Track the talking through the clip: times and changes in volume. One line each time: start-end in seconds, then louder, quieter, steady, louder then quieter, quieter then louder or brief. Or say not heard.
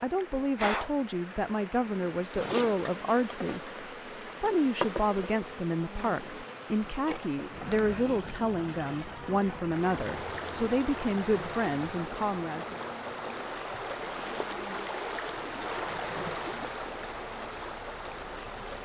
0.0-12.8 steady.